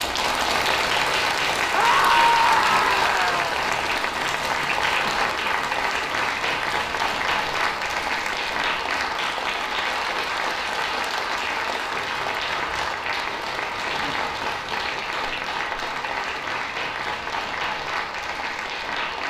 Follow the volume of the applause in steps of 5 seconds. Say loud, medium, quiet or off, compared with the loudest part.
loud, loud, loud, medium.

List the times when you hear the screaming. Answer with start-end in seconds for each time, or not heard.
1.7-3.5.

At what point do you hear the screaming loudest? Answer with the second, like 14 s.
2 s.